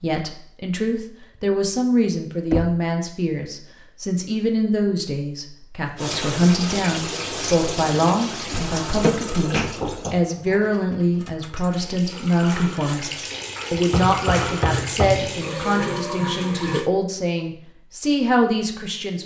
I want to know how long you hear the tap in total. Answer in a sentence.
You can hear the tap for 11 seconds altogether.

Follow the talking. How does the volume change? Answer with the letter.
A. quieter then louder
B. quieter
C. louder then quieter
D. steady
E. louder
D.